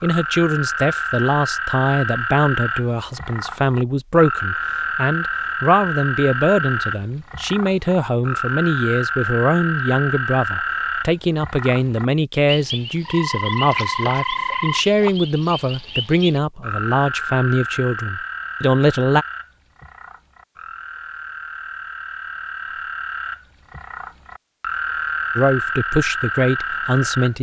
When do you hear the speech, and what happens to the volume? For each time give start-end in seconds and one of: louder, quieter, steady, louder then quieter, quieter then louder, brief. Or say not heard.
0.0-19.2 steady
25.4-27.3 brief.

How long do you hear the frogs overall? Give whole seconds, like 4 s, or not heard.
27 s.